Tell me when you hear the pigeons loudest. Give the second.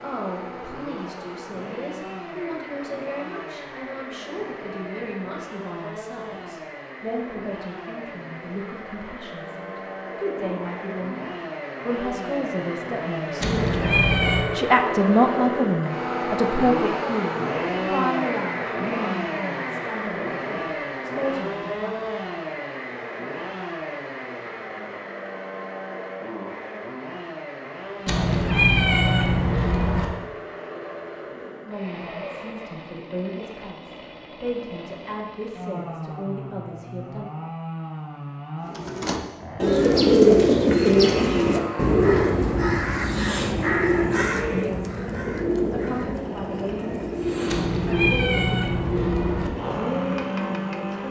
40 s.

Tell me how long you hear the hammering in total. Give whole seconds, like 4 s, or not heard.
not heard.